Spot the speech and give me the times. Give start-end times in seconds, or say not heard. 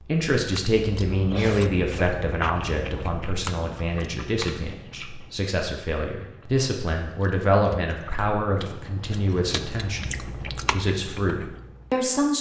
0.1-12.3.